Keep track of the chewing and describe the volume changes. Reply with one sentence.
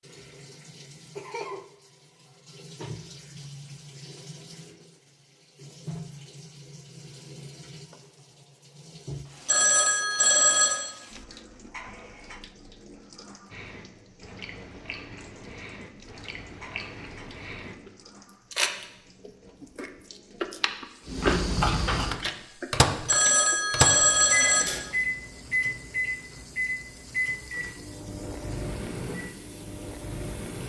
The volume of the chewing goes up, then down.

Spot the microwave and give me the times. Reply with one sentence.
The microwave can be heard from 21.1 to 30.6 s.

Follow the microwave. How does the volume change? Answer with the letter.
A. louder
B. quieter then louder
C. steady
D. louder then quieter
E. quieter
E.